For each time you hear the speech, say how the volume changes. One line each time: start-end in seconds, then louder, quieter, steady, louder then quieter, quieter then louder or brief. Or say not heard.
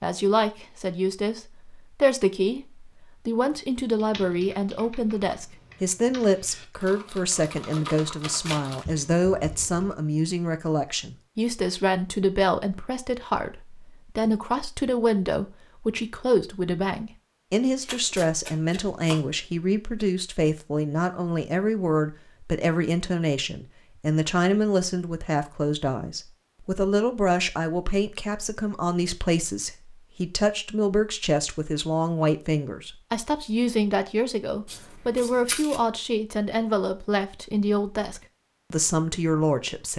0.0-39.9 steady.